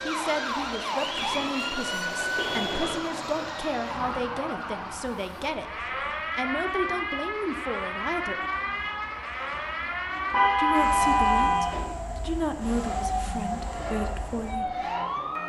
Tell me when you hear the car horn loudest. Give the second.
11 s.